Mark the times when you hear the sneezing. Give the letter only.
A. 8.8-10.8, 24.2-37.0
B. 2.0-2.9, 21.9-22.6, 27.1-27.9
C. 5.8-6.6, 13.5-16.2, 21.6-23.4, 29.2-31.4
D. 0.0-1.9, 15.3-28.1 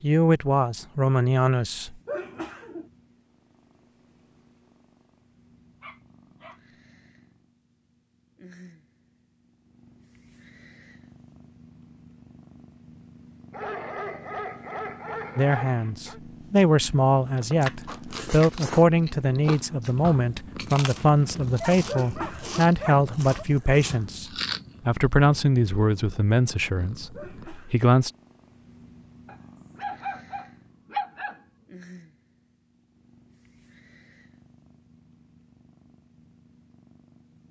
B.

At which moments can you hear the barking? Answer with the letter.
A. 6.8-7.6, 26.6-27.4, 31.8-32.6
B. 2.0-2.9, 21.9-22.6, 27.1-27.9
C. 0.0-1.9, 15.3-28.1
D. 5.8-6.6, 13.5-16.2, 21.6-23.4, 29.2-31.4
D.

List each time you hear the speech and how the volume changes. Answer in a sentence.
The speech can be heard briefly from 0.0 to 1.9 s; and from 15.3 to 28.1 s, at a steady volume.